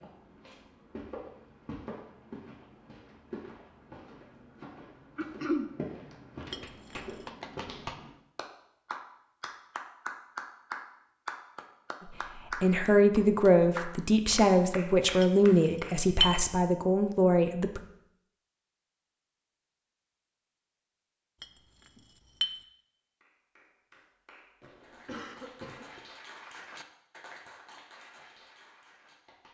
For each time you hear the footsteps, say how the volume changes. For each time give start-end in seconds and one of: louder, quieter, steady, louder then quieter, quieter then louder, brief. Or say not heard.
0.0-8.1 steady.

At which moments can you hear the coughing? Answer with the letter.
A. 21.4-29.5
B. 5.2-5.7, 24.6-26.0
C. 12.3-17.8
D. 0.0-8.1
B.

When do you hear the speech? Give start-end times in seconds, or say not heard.
12.3-17.8.